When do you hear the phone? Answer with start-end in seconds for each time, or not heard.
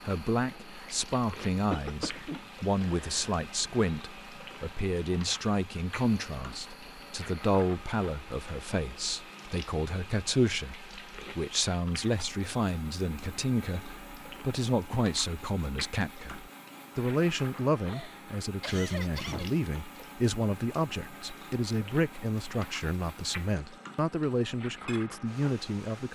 not heard.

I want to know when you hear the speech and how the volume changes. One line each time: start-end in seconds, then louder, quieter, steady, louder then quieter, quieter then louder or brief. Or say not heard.
0.0-26.1 steady.